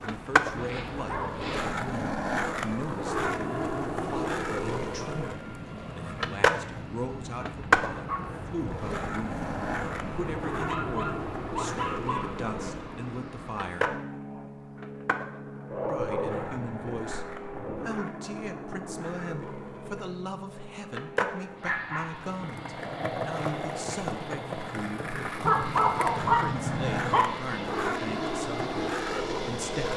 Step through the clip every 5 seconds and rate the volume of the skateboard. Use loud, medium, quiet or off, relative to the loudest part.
loud, loud, medium, medium, medium, loud.